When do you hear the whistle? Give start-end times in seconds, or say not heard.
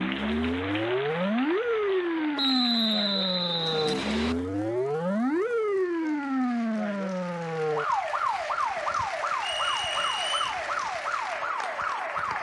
2.4-4.3, 9.4-10.6.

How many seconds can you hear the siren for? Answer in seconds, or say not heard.
12 s.